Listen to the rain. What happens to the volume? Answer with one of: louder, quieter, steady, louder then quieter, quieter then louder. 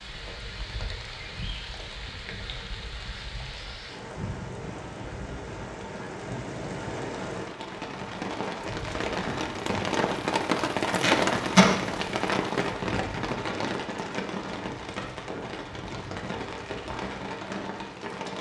louder then quieter.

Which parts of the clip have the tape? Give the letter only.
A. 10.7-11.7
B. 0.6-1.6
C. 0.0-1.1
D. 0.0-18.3
A.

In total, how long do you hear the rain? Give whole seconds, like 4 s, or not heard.
18 s.